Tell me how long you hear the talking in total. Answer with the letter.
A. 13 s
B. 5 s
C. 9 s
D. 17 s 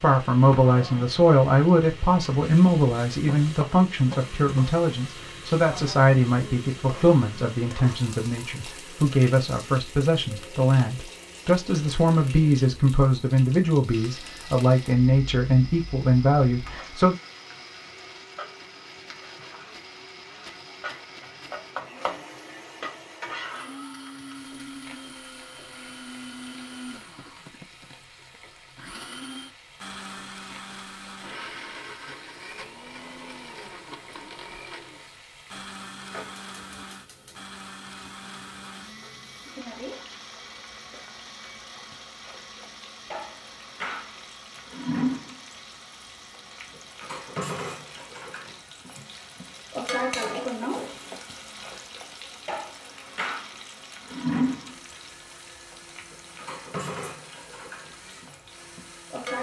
D.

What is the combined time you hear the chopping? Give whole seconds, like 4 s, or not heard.
not heard.